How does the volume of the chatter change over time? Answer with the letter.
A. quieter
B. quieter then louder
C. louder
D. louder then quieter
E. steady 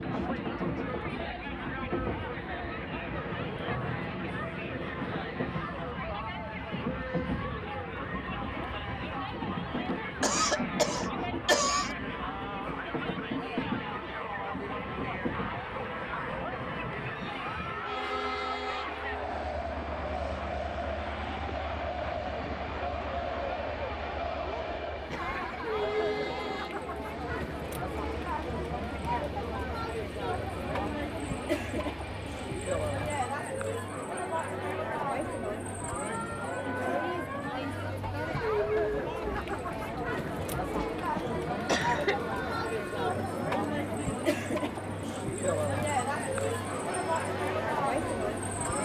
C.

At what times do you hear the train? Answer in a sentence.
You can hear the train from 0.0 to 33.4 s and from 37.5 to 48.8 s.